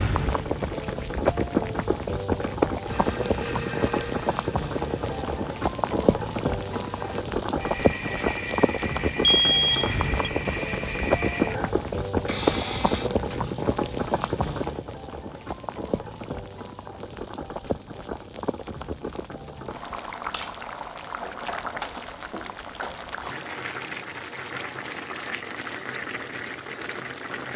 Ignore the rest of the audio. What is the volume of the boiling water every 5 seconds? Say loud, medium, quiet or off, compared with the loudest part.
loud, loud, loud, medium, medium, medium.